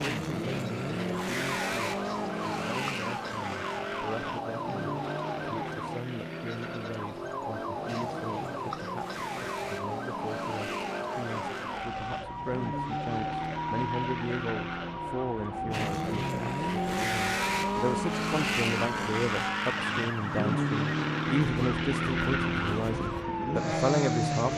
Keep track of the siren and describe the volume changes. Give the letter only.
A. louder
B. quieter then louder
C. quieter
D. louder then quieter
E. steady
E.